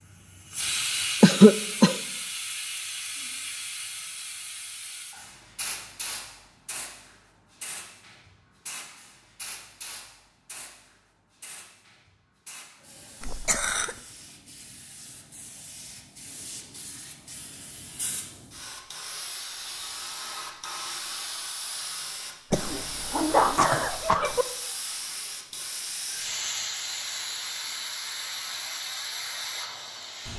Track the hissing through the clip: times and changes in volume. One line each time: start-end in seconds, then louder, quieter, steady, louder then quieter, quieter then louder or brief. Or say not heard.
0.2-30.3 quieter then louder.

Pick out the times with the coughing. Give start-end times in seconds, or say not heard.
1.2-2.0, 13.2-13.9, 22.5-24.4.